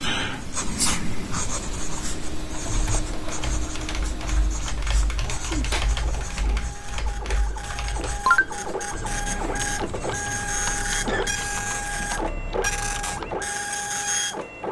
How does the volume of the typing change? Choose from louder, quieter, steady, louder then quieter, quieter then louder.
louder then quieter.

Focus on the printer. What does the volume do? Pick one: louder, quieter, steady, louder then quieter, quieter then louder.
louder.